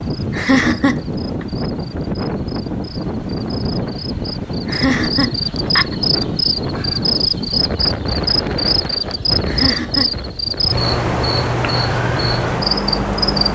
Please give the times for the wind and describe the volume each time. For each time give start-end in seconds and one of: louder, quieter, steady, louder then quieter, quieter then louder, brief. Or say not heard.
0.0-13.4 steady.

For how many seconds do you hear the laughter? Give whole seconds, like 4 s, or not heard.
3 s.